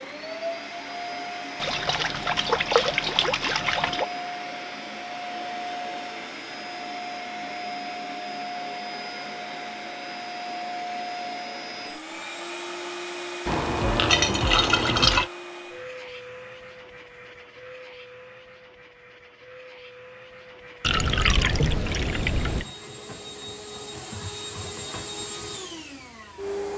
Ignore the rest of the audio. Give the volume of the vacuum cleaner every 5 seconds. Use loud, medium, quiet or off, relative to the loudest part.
loud, loud, loud, medium, medium, loud.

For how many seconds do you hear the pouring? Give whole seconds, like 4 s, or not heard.
6 s.